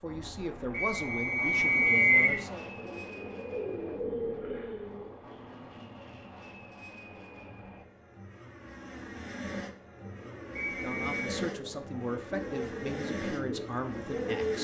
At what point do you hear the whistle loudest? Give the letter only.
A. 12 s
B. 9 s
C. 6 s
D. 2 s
D.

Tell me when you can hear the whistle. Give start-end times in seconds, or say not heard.
0.7-2.4, 10.6-11.2.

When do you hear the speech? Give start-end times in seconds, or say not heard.
0.0-2.7, 10.7-14.5.